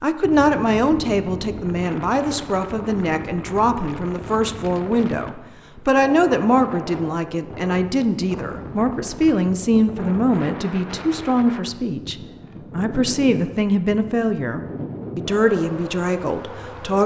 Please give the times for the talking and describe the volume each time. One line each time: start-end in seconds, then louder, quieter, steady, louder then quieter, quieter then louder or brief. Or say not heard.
0.0-17.0 steady.